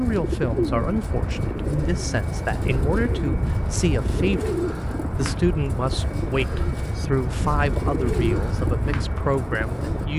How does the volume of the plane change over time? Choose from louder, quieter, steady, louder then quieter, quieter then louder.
steady.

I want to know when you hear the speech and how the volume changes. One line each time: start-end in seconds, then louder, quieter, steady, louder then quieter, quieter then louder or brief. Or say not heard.
0.0-10.1 steady.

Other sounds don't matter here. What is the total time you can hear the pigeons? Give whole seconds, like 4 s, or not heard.
10 s.